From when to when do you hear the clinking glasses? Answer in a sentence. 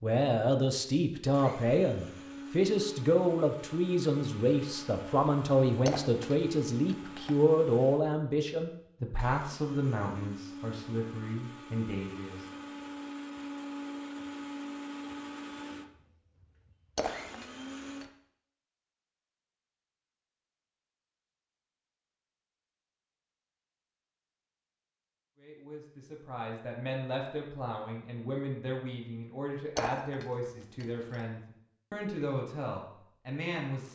You can hear the clinking glasses from 5.8 to 7.3 s, from 16.9 to 18.1 s and from 29.8 to 31.2 s.